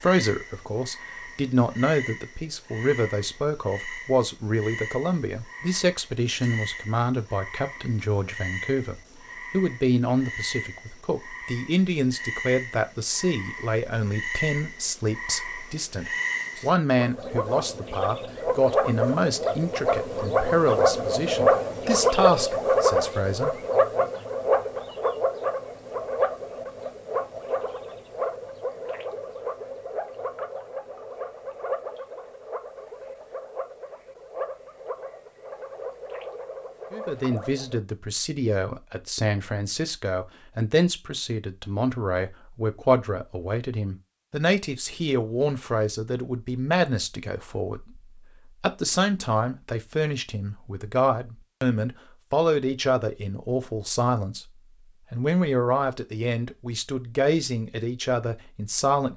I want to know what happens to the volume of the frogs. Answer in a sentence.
The volume of the frogs goes up, then down.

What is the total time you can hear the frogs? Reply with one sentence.
The frogs can be heard for 38 seconds in total.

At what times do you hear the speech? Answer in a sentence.
The speech can be heard from 0.0 to 24.1 s, from 36.9 to 54.5 s and from 55.1 to 59.1 s.